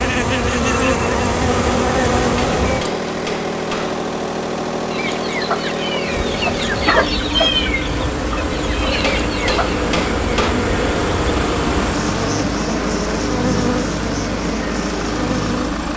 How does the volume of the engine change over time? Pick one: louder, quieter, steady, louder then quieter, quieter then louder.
steady.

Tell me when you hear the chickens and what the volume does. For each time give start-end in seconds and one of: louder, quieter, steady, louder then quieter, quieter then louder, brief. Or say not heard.
4.9-9.8 louder then quieter.